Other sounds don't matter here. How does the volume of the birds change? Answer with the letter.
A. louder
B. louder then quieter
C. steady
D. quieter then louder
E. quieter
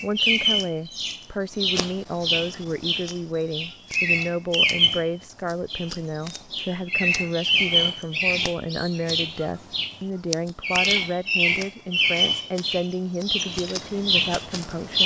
C.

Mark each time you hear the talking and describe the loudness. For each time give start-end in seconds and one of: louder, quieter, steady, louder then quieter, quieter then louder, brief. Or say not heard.
0.0-15.0 steady.